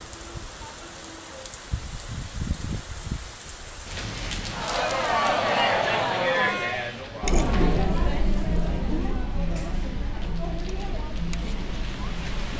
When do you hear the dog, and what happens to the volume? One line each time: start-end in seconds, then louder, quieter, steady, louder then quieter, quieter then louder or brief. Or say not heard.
not heard.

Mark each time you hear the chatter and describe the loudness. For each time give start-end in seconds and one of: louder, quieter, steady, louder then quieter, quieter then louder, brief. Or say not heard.
4.5-12.5 quieter.